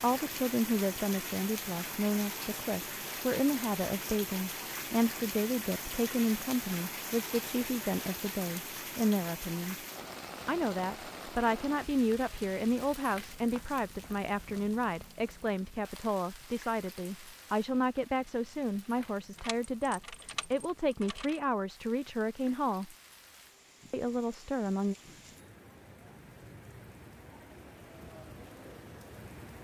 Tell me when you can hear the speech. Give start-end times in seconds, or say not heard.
0.0-9.8, 10.4-22.9, 23.9-24.9.